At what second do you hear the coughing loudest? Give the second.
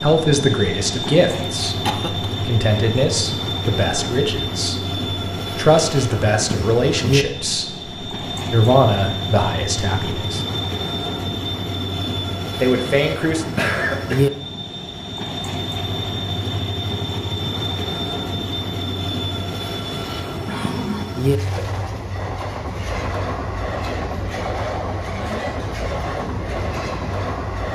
14 s.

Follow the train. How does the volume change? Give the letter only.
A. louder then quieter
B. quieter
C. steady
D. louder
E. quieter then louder
C.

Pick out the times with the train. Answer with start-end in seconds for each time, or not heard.
0.0-27.6.